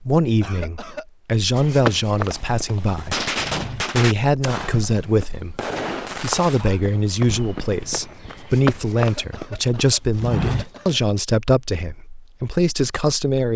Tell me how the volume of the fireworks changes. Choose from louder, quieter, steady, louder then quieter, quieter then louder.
quieter.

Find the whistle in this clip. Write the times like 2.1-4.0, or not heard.
not heard.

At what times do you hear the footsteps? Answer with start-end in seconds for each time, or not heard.
1.6-10.9.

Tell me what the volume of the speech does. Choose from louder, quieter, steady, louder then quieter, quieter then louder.
steady.